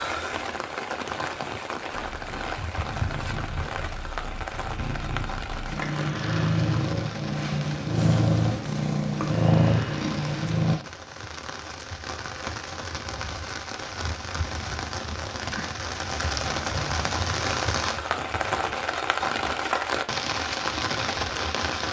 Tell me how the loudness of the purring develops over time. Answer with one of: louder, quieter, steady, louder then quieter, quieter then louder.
louder.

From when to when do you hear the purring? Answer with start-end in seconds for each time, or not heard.
1.9-10.8.